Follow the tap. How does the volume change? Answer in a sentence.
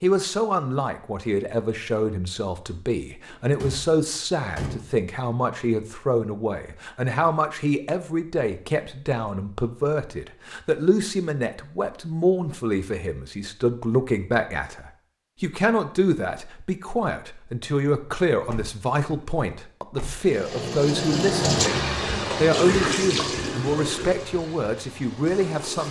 The volume of the tap goes down.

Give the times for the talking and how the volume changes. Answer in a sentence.
You can hear the talking from 0.0 to 25.8 s, at a steady volume.